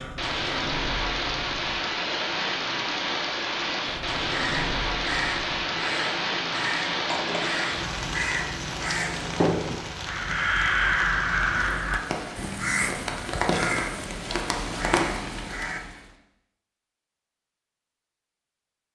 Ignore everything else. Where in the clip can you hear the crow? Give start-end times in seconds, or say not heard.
4.2-15.8.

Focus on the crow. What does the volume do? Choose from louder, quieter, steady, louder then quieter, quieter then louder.
louder then quieter.